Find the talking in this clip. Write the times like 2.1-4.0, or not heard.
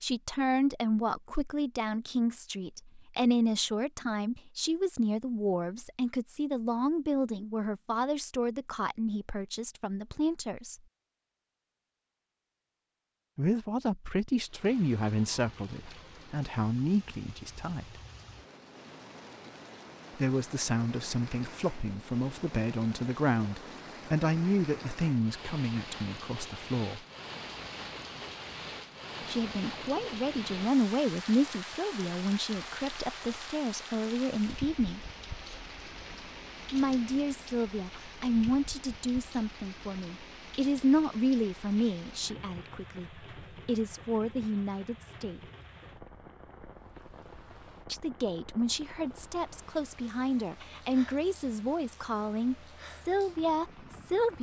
0.0-10.8, 13.3-18.0, 20.1-27.1, 29.2-35.0, 36.7-45.4, 47.9-54.3.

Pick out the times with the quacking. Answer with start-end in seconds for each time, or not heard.
not heard.